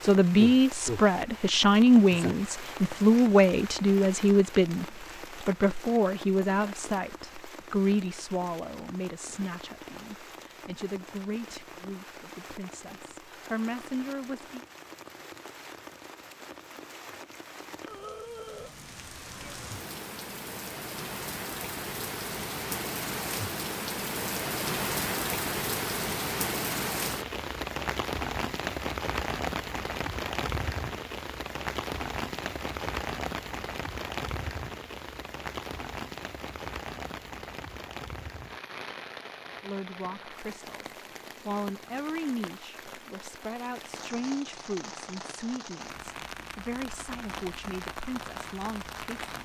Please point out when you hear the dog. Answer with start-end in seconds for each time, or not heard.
not heard.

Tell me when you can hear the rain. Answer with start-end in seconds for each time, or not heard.
0.0-49.4.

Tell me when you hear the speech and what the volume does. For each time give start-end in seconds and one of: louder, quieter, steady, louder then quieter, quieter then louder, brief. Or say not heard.
0.0-14.7 quieter
39.6-49.4 steady.